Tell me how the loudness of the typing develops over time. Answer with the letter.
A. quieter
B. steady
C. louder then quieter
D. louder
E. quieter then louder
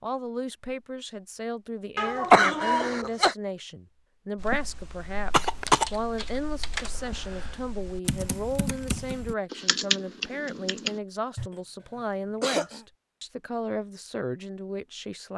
D.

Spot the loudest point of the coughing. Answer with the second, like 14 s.
2 s.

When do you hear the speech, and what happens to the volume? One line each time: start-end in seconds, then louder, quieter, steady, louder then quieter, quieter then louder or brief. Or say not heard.
0.0-15.3 steady.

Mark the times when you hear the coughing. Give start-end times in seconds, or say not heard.
1.9-3.4, 5.3-5.8, 12.4-12.8.